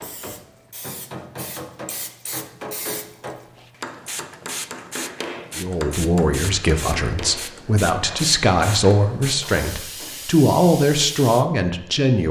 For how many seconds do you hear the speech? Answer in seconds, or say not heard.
7 s.